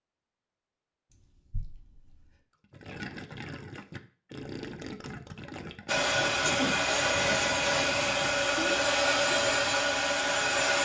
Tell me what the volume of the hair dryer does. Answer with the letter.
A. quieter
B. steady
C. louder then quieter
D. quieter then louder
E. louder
B.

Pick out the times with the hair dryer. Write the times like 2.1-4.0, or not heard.
5.8-10.7.